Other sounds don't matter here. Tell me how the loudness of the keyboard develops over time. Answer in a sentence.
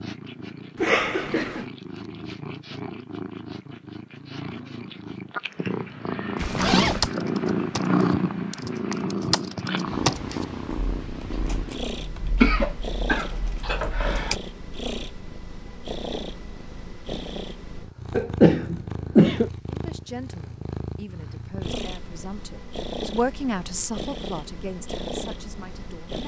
The volume of the keyboard goes up, then down.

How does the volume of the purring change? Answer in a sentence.
The volume of the purring goes up, then down.